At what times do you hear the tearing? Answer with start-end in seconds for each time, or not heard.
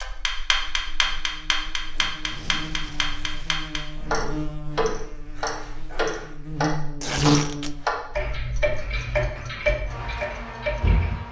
1.9-3.7, 7.0-7.7.